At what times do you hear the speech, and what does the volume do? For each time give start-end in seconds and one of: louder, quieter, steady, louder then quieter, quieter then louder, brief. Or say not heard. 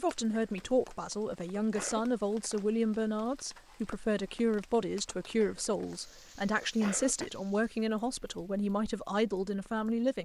0.0-10.1 steady.